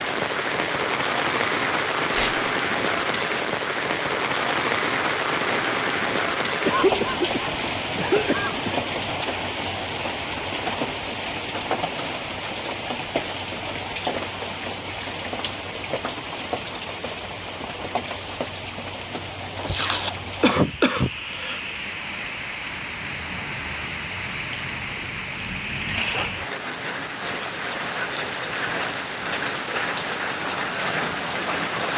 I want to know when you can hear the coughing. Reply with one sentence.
You can hear the coughing from 6.7 to 8.8 s and from 19.6 to 21.6 s.